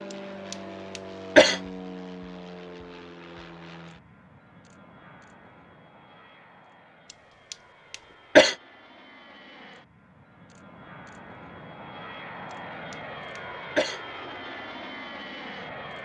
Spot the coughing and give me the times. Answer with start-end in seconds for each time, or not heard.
0.5-1.6, 7.5-8.6, 12.9-14.0.